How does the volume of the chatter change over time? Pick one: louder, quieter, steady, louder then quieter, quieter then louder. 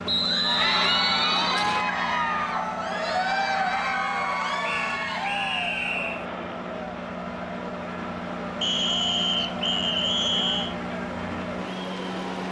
quieter.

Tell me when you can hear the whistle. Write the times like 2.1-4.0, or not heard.
0.1-1.9, 4.6-6.2, 8.6-10.8.